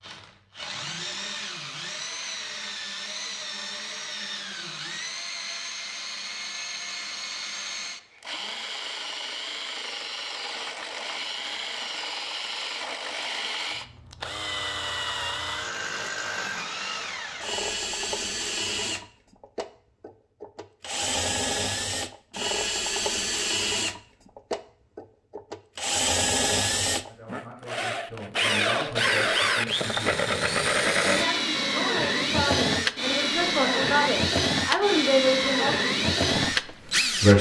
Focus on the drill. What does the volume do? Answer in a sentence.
The loudness of the drill goes up.